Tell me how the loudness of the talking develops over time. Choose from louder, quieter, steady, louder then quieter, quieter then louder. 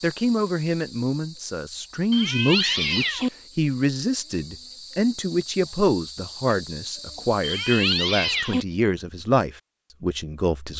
steady.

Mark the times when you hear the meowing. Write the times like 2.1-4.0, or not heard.
2.1-3.3, 7.4-8.7.